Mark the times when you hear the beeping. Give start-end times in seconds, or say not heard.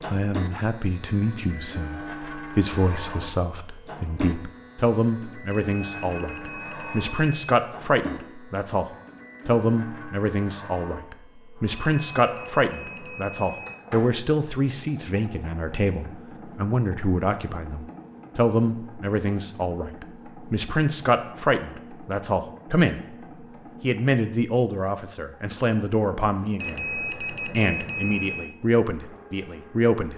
5.5-7.5, 11.8-13.8, 26.6-28.6.